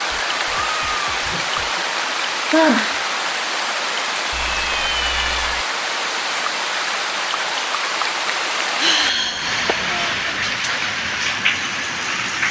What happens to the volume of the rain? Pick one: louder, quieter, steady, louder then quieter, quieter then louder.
steady.